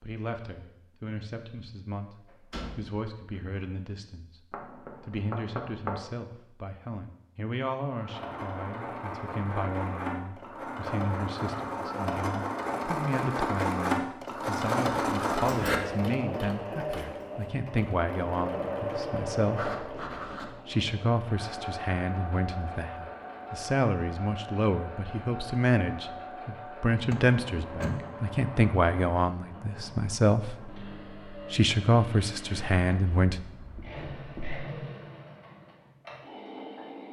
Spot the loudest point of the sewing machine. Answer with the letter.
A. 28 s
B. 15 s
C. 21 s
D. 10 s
B.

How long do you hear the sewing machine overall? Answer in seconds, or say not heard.
29 s.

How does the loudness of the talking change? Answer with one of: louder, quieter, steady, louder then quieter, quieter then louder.
louder.